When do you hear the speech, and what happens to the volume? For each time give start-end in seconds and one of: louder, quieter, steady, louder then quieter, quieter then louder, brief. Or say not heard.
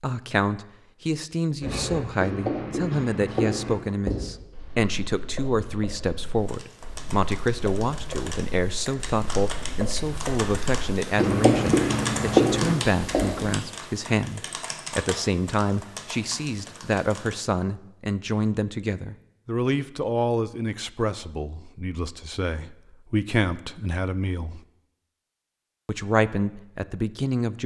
0.0-24.6 steady
25.9-27.6 brief.